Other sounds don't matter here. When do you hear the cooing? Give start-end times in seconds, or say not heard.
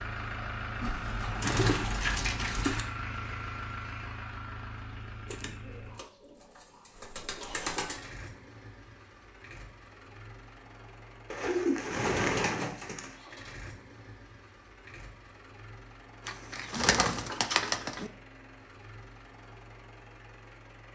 0.8-2.9, 5.3-8.1, 11.3-13.2, 16.2-18.1.